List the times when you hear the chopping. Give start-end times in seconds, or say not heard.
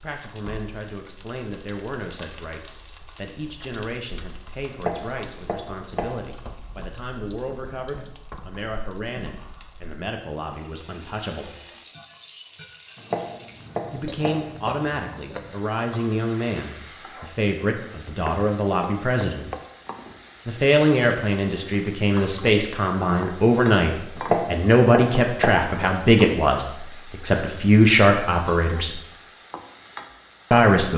4.7-6.2, 12.9-14.5, 24.1-25.7.